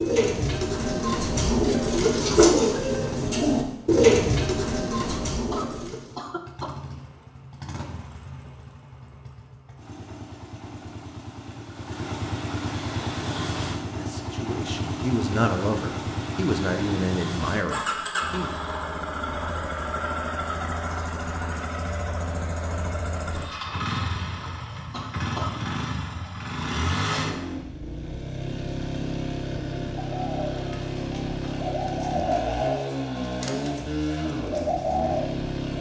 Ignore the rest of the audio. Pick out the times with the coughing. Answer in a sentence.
You can hear the coughing from 5.0 to 6.8 s and from 24.9 to 25.6 s.